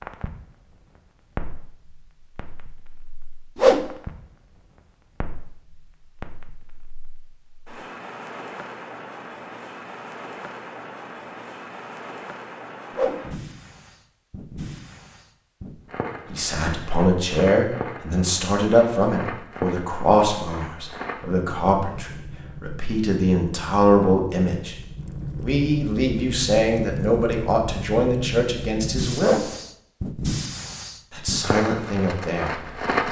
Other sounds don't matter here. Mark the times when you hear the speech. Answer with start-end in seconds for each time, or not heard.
16.3-24.8, 25.4-29.4, 31.1-33.0.